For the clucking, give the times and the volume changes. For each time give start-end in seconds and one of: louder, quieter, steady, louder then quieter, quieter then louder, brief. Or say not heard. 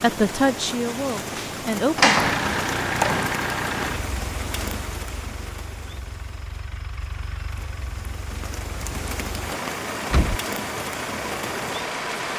not heard.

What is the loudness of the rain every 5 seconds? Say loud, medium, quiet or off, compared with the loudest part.
loud, medium, loud.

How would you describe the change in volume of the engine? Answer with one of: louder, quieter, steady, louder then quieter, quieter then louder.
quieter then louder.